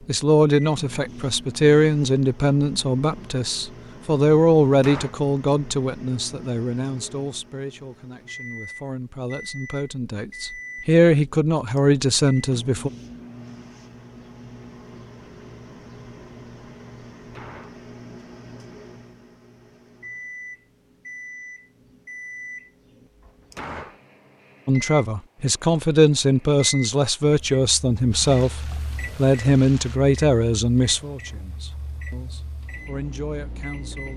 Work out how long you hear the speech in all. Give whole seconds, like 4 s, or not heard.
22 s.